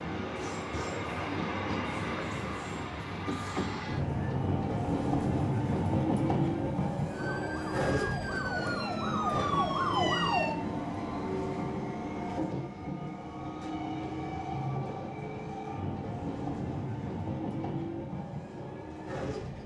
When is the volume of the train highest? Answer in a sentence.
The volume of the train peaks at 6 seconds.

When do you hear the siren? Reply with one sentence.
The siren can be heard from 7.1 to 10.6 s.